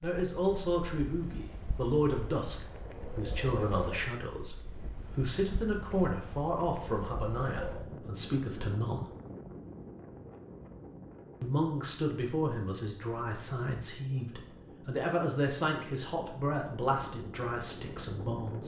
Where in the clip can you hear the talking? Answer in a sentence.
The talking can be heard from 0.0 to 9.1 s and from 11.4 to 18.6 s.